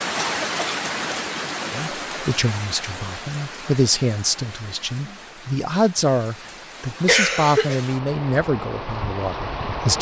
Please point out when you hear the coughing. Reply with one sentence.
You can hear the coughing from 0.1 to 1.1 s and from 7.0 to 7.8 s.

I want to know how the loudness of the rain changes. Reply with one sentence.
The volume of the rain goes down, then up.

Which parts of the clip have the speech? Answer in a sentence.
You can hear the speech from 1.7 to 9.9 s.